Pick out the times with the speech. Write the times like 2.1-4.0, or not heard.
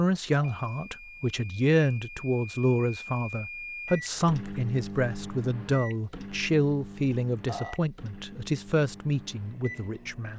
0.0-10.3.